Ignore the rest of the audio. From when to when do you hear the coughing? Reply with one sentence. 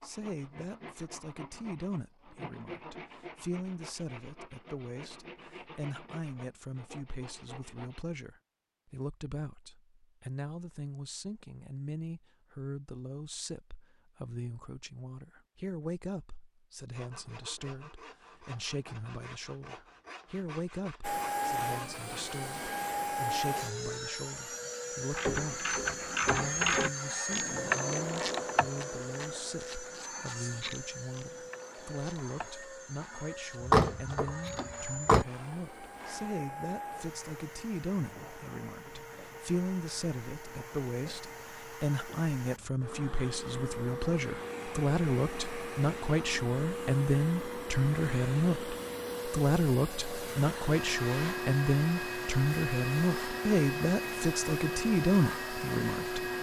The coughing can't be heard in this clip.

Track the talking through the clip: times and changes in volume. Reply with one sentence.
You can hear the talking from 0.0 to 56.2 s, getting louder.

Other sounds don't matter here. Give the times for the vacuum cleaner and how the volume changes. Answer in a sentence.
You can hear the vacuum cleaner from 21.0 to 56.3 s, getting quieter then louder.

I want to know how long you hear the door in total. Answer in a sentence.
The door can be heard for 2 seconds in total.